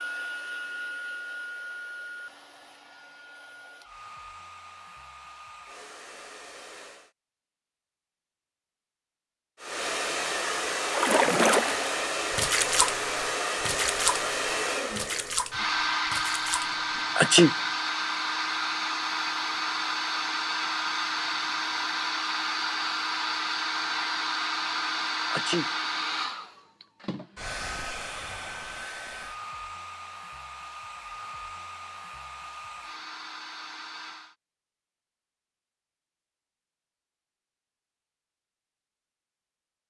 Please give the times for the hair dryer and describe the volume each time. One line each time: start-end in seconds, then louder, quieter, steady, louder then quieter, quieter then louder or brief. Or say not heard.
0.0-7.1 quieter
9.6-34.4 quieter.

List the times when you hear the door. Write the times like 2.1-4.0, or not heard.
not heard.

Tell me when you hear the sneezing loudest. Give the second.
17 s.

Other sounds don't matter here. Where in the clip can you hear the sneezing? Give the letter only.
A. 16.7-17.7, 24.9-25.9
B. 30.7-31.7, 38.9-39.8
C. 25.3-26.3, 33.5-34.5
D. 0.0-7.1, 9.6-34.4
A.